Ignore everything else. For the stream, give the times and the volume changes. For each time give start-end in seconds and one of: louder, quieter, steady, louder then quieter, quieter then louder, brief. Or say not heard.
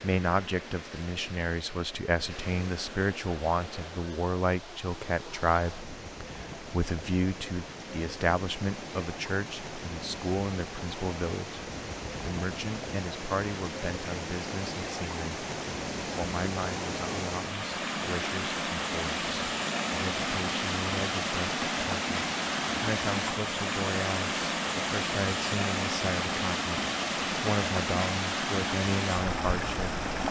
0.0-30.2 louder.